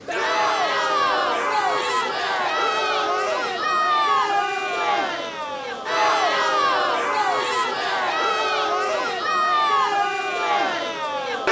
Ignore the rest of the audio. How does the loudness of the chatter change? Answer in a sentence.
The volume of the chatter stays about the same.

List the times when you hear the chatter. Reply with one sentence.
The chatter can be heard from 0.1 to 11.4 s.